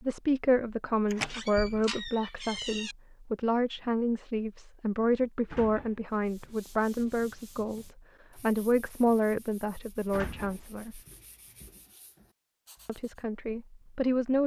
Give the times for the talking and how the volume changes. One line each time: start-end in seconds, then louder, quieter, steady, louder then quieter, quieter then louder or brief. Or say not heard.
0.0-11.0 steady
12.8-14.4 brief.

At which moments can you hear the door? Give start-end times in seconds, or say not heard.
1.1-3.0, 5.5-7.0, 10.1-11.8.